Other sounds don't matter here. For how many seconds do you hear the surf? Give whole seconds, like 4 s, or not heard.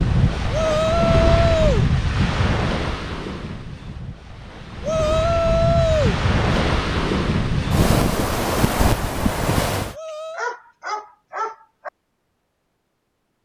10 s.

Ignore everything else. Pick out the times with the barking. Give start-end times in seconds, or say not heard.
9.9-11.9.